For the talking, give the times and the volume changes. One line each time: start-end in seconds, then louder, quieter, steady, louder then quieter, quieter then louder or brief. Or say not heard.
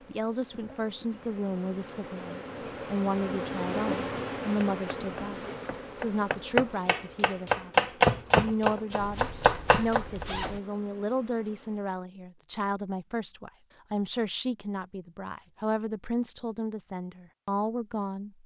0.1-18.4 steady.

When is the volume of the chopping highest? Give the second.
8 s.